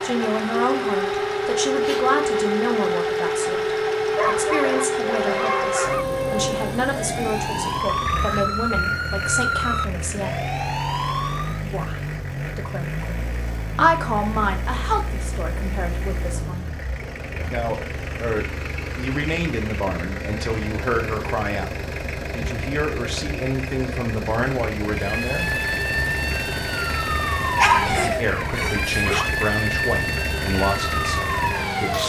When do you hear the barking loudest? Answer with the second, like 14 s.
28 s.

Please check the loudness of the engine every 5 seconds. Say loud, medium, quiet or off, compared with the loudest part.
loud, loud, loud, medium, loud, loud, loud.